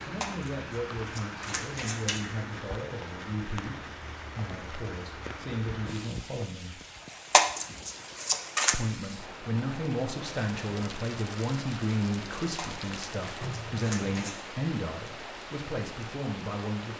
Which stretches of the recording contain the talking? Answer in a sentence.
The talking can be heard from 0.1 to 6.8 s and from 8.7 to 16.9 s.